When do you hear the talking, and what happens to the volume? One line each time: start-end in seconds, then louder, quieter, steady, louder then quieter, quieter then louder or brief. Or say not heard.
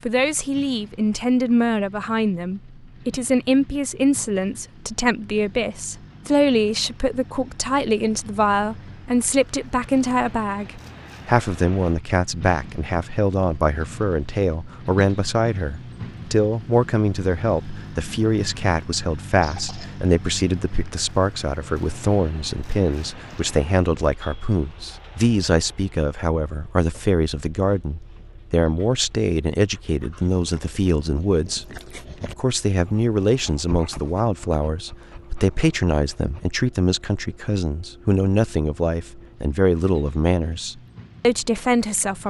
0.1-31.6 steady
32.4-42.2 steady.